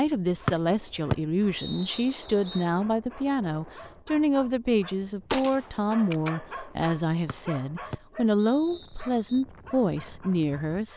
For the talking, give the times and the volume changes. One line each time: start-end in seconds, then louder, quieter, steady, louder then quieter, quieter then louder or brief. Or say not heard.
0.0-10.9 steady.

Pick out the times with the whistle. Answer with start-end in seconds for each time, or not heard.
0.5-2.6, 7.2-9.4.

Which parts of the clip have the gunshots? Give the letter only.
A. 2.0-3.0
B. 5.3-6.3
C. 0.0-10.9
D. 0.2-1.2
B.